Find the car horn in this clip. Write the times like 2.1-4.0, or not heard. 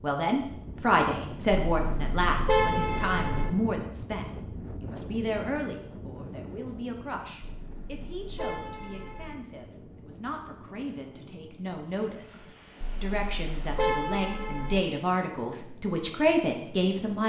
1.7-3.5, 7.4-9.4, 12.8-14.8.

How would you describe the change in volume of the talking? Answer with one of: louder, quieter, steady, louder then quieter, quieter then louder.
quieter then louder.